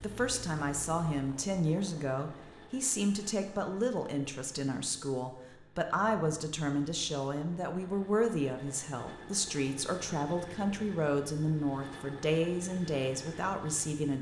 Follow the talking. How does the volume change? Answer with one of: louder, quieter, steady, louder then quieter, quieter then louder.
steady.